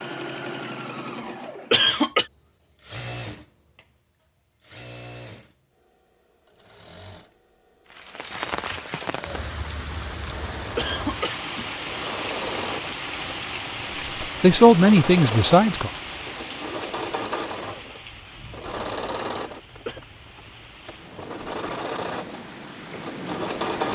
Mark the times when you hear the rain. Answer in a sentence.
You can hear the rain from 7.9 to 23.8 s.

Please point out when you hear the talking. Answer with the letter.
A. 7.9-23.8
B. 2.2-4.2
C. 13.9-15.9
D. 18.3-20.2
C.